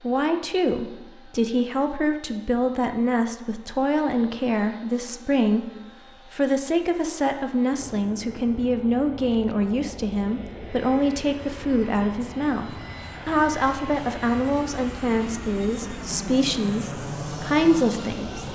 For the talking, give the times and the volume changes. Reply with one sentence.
You can hear the talking from 0.0 to 18.4 s, at a steady volume.